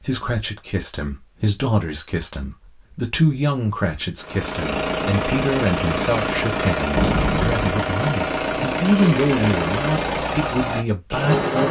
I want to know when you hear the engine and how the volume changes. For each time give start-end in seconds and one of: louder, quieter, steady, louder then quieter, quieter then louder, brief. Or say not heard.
4.2-11.6 steady.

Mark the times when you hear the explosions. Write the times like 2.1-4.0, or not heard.
7.0-7.8.